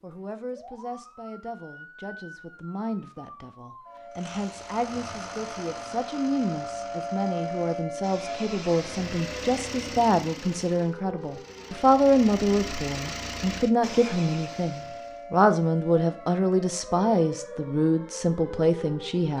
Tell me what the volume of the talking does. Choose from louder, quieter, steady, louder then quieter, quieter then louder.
louder.